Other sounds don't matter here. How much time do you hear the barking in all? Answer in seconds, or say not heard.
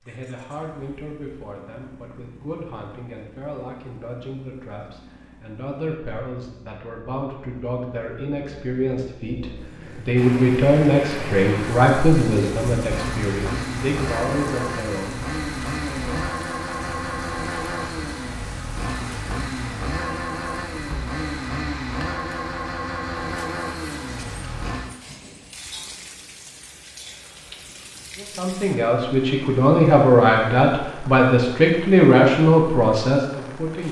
not heard.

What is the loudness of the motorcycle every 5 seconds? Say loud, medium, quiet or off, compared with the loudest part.
quiet, quiet, loud, loud, loud, off, off.